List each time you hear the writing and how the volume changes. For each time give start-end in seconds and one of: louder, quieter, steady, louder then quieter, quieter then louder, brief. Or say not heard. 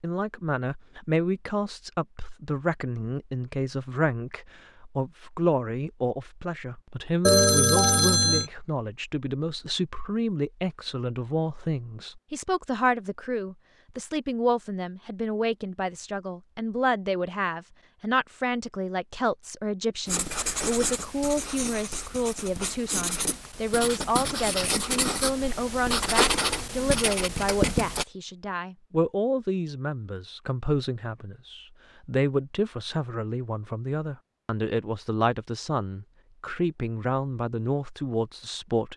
20.1-28.1 louder.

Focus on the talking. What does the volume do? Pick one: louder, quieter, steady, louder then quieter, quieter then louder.
steady.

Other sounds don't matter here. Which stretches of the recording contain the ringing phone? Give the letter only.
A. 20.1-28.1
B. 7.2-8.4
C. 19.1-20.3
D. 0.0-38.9
B.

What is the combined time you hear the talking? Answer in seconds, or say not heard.
39 s.